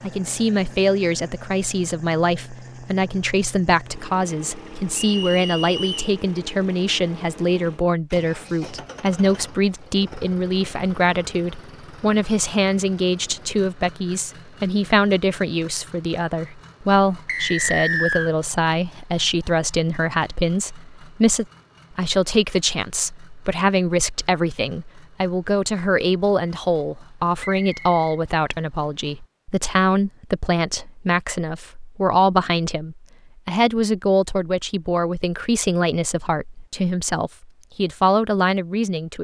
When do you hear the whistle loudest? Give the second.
18 s.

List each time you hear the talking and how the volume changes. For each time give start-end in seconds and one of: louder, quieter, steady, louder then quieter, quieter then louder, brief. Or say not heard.
0.0-39.2 steady.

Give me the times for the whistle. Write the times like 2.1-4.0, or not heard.
5.0-6.1, 17.2-18.3, 27.4-28.1.